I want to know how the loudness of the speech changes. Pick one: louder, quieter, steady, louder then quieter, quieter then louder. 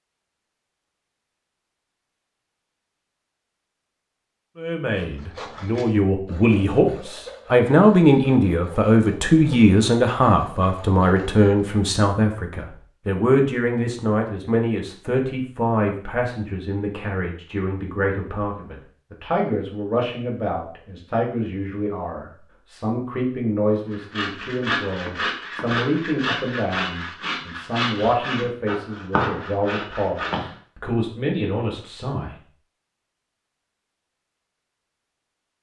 quieter.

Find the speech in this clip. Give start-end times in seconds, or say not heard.
4.5-32.4.